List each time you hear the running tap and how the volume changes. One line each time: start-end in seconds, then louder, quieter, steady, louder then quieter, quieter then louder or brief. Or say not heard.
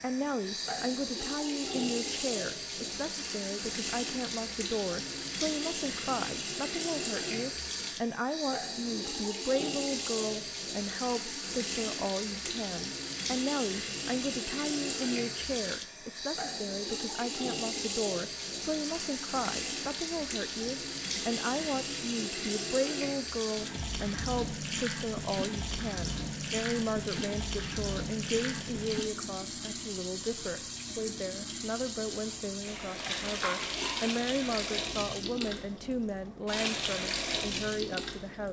0.0-38.4 steady.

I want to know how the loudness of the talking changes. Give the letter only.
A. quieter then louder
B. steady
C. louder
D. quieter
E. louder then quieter
B.